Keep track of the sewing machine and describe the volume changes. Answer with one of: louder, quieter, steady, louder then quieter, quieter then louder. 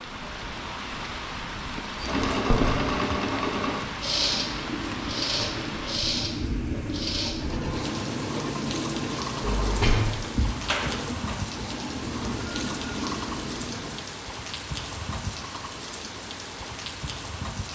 quieter.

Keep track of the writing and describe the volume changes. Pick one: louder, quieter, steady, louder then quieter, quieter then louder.
steady.